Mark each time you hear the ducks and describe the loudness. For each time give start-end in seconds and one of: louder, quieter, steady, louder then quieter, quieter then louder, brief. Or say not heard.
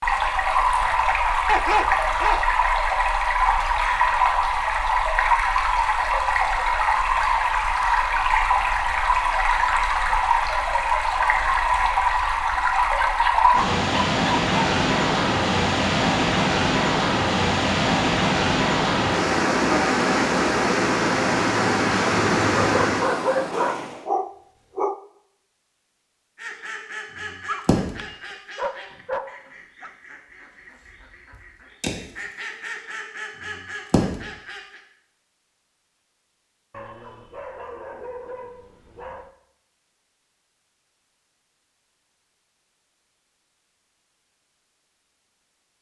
26.4-34.8 quieter then louder.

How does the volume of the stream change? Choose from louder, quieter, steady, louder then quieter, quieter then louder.
steady.